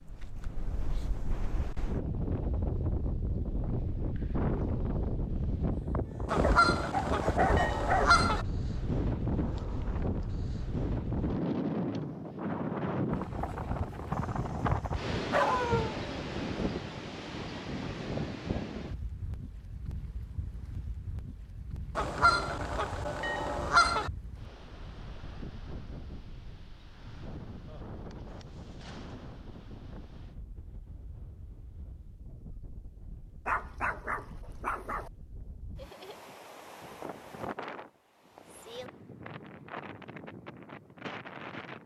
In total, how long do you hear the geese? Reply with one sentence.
You can hear the geese for 4 seconds altogether.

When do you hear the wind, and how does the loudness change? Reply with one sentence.
You can hear the wind from 0.0 to 41.8 s, getting quieter.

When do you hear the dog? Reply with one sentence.
You can hear the dog from 6.4 to 8.2 s, from 14.1 to 15.9 s and from 33.5 to 35.1 s.